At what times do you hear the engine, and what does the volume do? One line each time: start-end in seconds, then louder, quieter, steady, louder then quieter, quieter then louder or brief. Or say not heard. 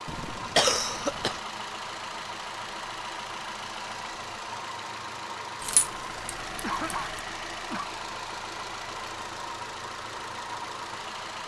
0.0-11.4 steady.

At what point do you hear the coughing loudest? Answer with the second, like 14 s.
1 s.